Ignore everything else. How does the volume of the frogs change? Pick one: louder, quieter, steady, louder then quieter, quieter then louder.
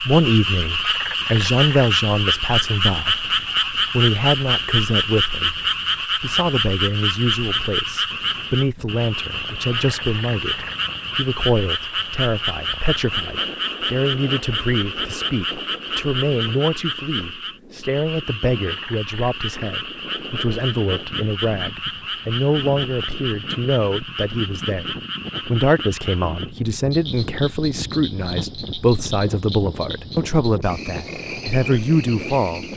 quieter.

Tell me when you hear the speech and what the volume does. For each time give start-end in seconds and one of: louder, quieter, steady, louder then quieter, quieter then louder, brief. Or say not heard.
0.0-32.6 steady.